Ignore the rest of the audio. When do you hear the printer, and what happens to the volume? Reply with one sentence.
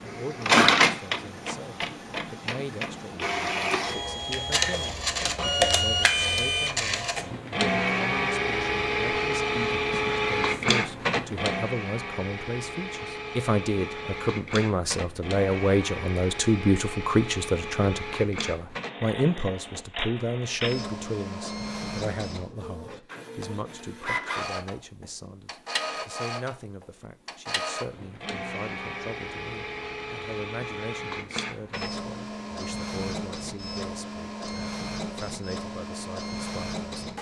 The printer can be heard from 0.0 to 37.1 s, getting quieter.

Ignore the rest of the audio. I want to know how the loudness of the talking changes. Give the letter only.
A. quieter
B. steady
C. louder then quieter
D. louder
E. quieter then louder
C.